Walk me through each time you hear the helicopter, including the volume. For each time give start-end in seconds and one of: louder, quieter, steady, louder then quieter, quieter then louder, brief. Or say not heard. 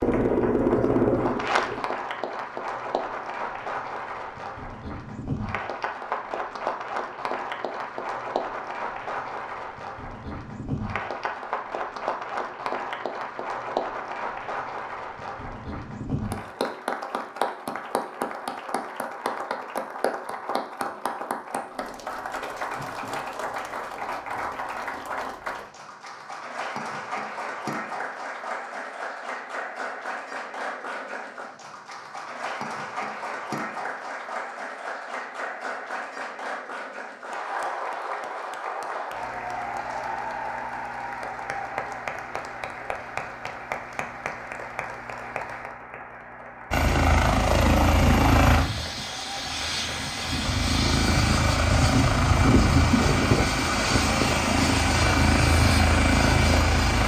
0.0-1.8 brief
46.7-57.0 quieter then louder.